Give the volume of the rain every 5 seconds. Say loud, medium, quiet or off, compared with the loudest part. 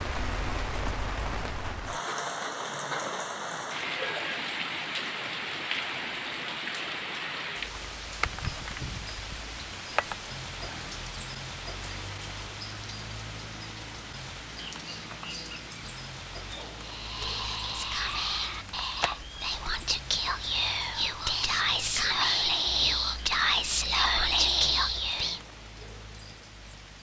loud, loud, medium, medium, medium, quiet.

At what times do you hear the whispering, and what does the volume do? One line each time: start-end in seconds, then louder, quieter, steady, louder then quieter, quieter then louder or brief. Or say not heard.
16.8-25.4 louder.